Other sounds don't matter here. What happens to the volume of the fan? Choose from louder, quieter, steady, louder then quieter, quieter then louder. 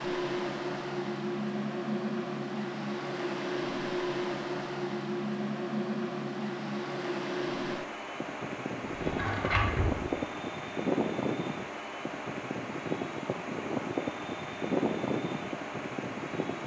steady.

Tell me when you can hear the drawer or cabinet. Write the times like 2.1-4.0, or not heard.
8.8-10.0.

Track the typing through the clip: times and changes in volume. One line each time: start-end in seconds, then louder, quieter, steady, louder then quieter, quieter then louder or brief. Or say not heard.
not heard.